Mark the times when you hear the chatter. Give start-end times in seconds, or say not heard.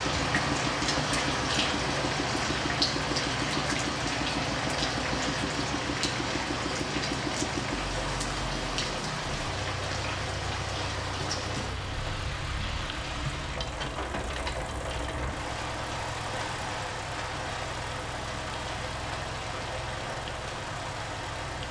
not heard.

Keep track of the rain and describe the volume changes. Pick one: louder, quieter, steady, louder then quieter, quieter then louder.
quieter.